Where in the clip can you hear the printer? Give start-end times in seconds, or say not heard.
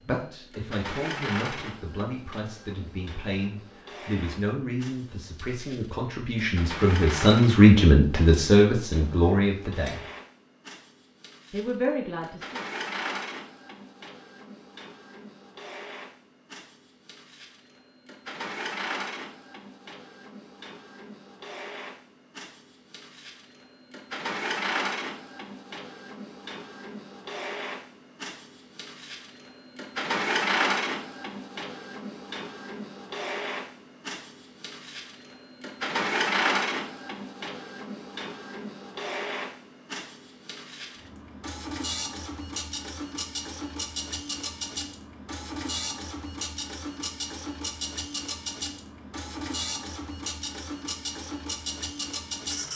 0.0-52.7.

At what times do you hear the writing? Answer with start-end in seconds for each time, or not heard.
not heard.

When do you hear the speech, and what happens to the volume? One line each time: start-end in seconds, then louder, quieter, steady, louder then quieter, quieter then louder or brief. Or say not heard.
0.1-10.0 louder
11.5-12.6 brief.